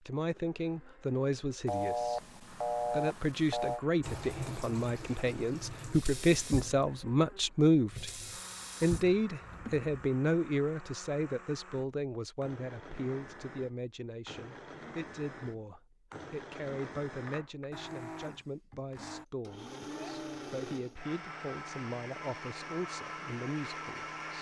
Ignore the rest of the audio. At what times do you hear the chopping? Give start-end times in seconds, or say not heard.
not heard.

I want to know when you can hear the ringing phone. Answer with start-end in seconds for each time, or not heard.
1.6-3.8.